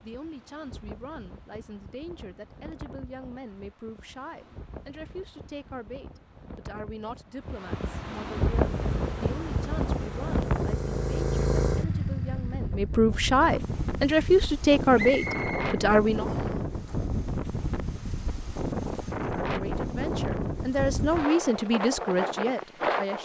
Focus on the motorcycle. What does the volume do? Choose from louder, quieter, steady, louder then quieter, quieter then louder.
louder then quieter.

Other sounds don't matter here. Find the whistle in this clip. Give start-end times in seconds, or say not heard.
14.9-16.6.